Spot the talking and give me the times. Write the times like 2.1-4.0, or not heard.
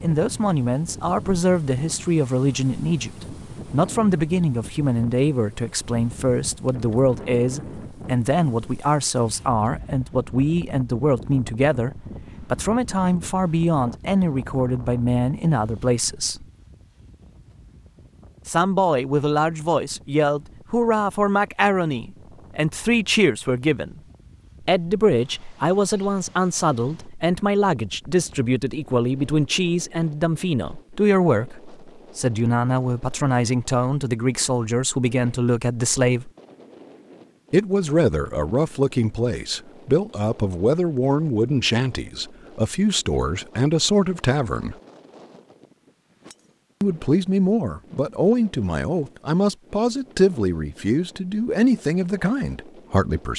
0.0-16.4, 18.4-24.0, 24.6-36.3, 37.5-44.8, 46.8-53.3.